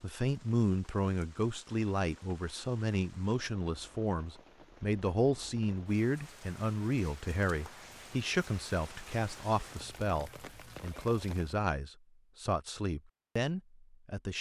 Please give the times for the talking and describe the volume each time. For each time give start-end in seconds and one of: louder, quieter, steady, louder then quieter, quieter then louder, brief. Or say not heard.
0.0-14.3 steady.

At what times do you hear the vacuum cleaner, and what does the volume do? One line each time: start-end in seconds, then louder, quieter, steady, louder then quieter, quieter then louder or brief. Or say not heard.
not heard.